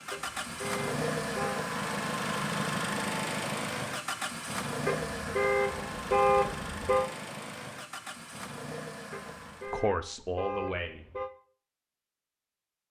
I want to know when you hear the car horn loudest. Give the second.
6 s.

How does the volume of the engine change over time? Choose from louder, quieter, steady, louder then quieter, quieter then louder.
quieter.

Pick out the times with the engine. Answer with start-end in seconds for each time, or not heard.
0.0-9.8.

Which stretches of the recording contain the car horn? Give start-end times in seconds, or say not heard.
0.1-1.6, 4.8-7.0, 9.1-11.3.